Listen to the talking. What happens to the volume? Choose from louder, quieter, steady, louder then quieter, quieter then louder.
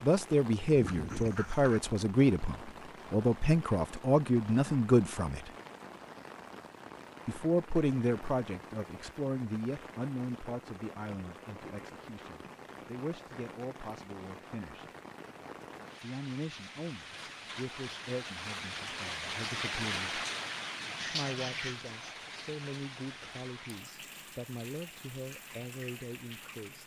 quieter.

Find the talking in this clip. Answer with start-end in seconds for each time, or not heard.
0.0-5.5, 7.2-14.8, 16.0-20.2, 21.0-26.8.